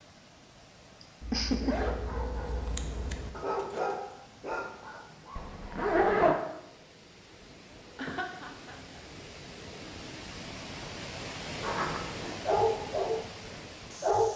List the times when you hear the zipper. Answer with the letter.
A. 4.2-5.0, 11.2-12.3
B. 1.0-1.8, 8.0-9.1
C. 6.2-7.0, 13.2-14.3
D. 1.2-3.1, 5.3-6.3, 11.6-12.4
D.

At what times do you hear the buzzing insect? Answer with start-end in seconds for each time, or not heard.
not heard.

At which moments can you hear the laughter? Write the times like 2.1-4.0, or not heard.
1.0-1.8, 8.0-9.1.